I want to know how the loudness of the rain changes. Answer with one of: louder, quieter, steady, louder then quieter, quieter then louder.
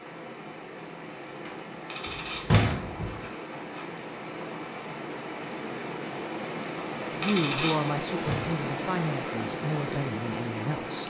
louder.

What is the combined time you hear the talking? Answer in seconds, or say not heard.
4 s.